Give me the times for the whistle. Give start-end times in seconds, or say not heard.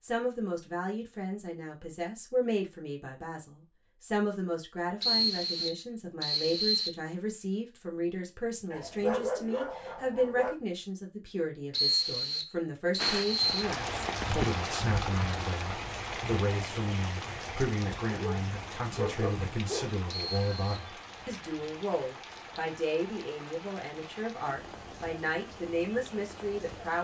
5.0-7.0, 11.7-13.7, 20.2-20.9.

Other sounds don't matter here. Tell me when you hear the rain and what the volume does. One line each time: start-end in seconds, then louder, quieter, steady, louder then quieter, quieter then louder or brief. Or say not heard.
12.9-26.9 quieter.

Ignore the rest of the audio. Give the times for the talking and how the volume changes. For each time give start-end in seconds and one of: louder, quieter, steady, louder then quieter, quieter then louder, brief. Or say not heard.
0.0-26.9 steady.